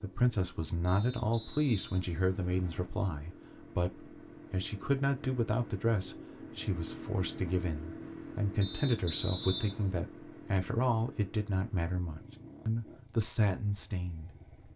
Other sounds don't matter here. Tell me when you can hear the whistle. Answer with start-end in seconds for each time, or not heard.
0.8-2.9, 8.6-9.9.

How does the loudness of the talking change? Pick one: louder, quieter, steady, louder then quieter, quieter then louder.
steady.